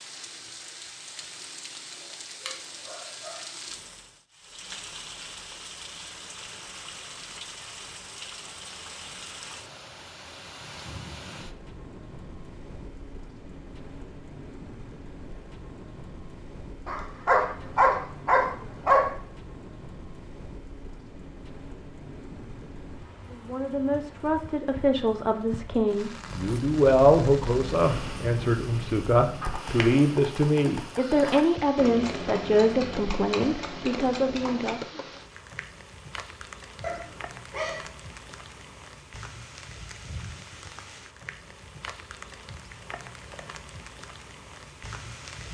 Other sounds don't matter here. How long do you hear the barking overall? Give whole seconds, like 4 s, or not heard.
4 s.